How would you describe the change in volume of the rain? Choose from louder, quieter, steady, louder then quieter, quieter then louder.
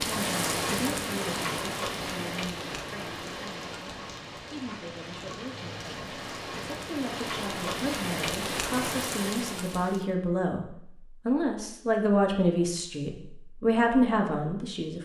quieter then louder.